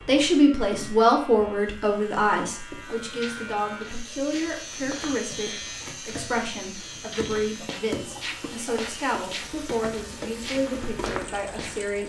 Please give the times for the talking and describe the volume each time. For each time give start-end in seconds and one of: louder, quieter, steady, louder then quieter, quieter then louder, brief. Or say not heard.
0.1-12.0 quieter.